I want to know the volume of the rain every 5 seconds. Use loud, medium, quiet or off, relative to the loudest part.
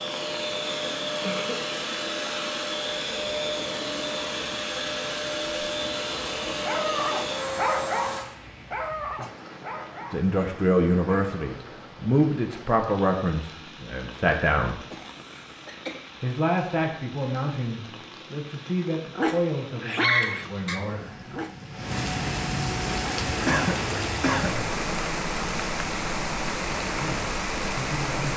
quiet, quiet, quiet, quiet, loud, loud.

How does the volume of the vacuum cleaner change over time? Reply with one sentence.
The loudness of the vacuum cleaner stays about the same.